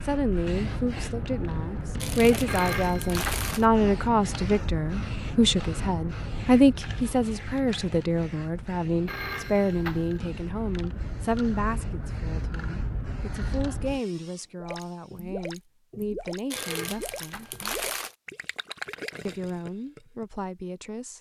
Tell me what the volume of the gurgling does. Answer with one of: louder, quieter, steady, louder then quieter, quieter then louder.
steady.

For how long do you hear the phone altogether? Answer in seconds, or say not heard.
3 s.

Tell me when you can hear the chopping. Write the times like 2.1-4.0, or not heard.
not heard.